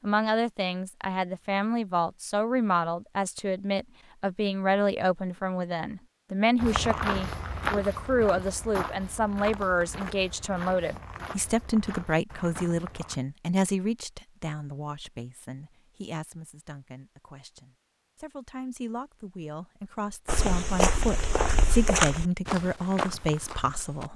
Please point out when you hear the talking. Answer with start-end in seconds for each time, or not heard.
0.0-24.1.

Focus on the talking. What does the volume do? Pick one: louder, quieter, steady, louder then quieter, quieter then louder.
quieter then louder.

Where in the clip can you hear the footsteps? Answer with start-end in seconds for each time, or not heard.
6.5-13.2, 20.2-24.1.